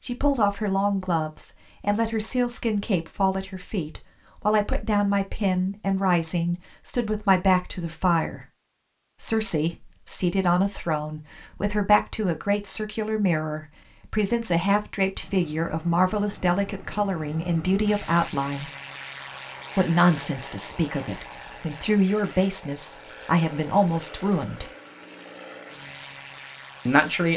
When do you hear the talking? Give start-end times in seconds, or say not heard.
0.1-8.4, 9.2-18.7, 19.8-24.6, 26.9-27.3.